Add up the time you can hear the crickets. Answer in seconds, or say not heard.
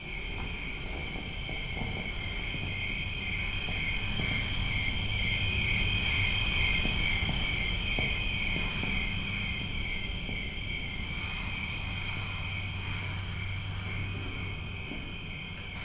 16 s.